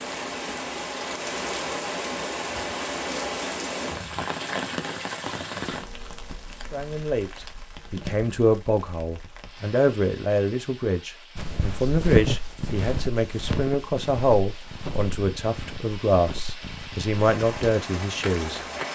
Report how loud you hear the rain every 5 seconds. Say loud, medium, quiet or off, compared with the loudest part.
loud, medium, quiet, medium.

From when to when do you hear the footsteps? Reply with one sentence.
You can hear the footsteps from 11.3 to 18.8 s.